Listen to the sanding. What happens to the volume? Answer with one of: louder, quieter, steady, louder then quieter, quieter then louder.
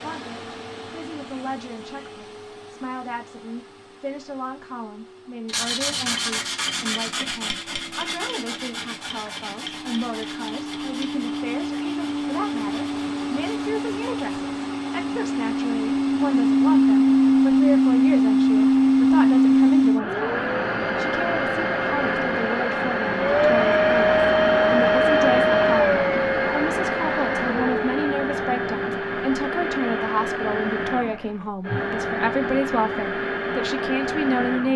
quieter.